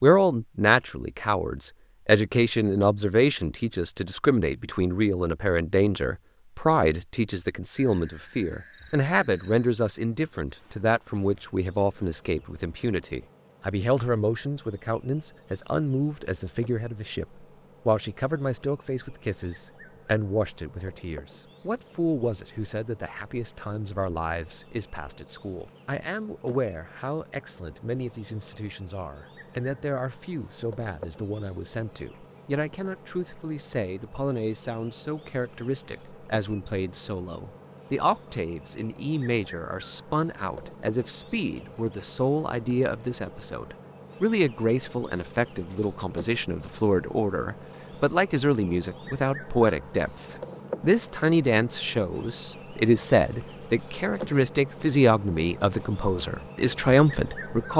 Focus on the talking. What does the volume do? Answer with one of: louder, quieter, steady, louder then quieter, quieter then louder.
quieter then louder.